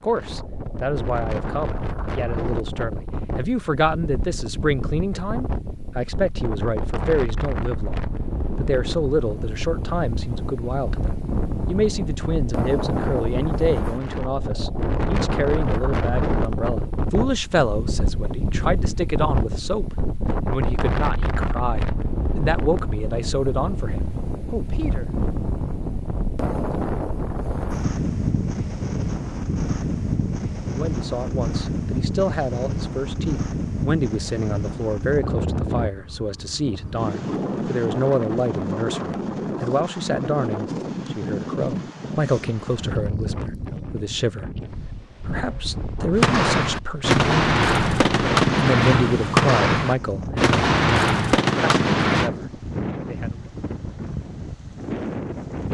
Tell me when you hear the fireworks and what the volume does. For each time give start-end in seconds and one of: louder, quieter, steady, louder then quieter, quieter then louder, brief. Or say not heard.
46.1-52.3 steady.